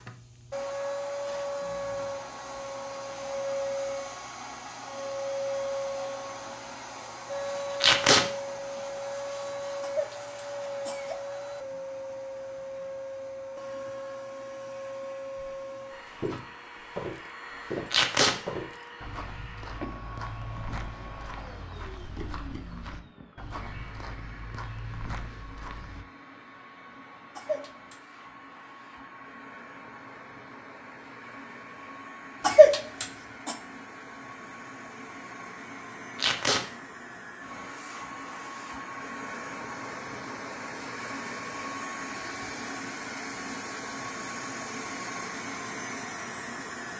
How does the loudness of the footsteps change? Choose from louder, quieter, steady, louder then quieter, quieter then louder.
quieter.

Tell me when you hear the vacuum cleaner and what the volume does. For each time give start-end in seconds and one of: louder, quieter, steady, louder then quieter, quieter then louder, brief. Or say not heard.
0.0-46.9 quieter then louder.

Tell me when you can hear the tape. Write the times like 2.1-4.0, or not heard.
7.8-8.2, 17.9-18.4, 36.1-36.6.